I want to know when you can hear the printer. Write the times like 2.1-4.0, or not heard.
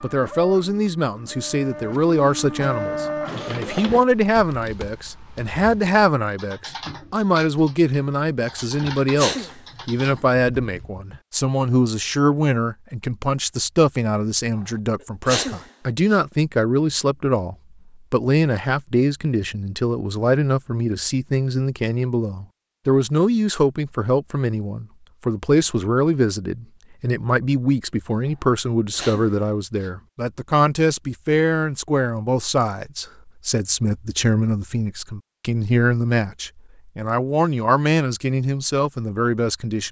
0.0-4.0.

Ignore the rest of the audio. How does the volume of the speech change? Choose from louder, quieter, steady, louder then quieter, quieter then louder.
steady.